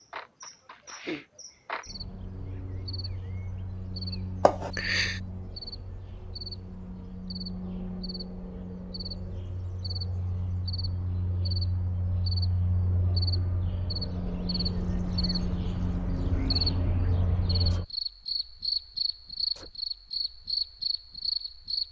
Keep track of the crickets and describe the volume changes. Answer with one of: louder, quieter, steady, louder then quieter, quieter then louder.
louder.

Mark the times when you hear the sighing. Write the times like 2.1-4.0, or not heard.
4.4-5.2.